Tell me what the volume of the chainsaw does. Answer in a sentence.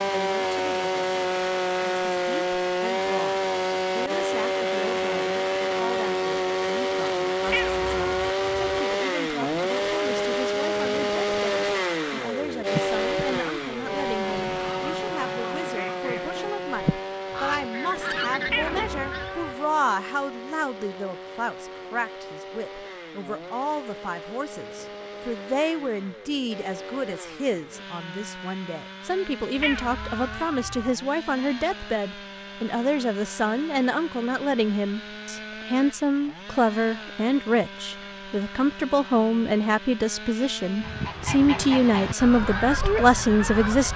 The volume of the chainsaw goes down.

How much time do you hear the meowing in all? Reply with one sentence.
You can hear the meowing for 4 seconds altogether.